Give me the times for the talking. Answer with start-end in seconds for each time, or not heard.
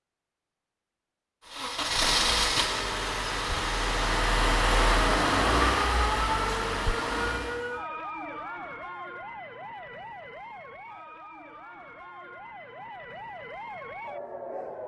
not heard.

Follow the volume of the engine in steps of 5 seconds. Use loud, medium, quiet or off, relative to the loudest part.
loud, loud, off.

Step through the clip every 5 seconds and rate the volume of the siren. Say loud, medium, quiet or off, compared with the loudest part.
off, loud, medium.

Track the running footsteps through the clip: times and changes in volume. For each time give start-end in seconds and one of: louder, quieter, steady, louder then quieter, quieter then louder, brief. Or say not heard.
not heard.